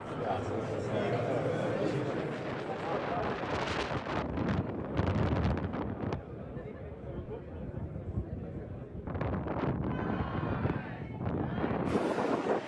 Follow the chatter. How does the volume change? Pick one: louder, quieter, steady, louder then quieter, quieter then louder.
quieter.